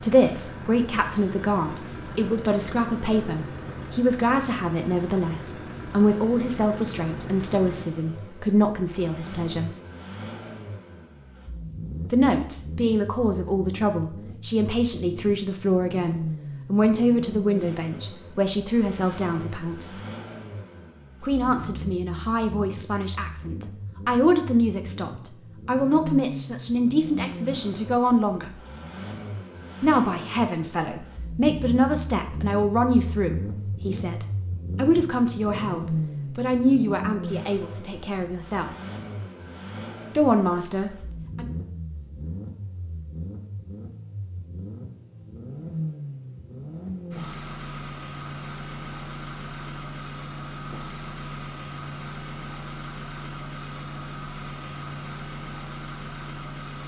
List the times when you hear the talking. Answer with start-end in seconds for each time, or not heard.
0.0-9.7, 12.1-19.9, 21.2-28.5, 29.8-38.7, 40.1-41.5.